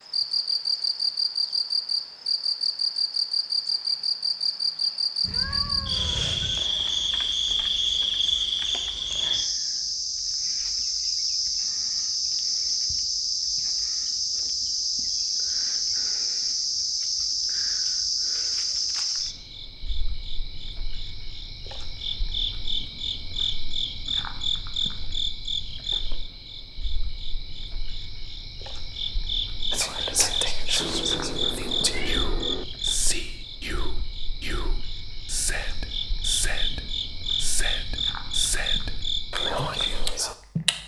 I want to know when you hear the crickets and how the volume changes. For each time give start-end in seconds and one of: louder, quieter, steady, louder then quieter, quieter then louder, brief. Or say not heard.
0.1-40.8 quieter.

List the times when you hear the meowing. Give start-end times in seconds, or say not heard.
5.2-6.7, 30.8-32.6.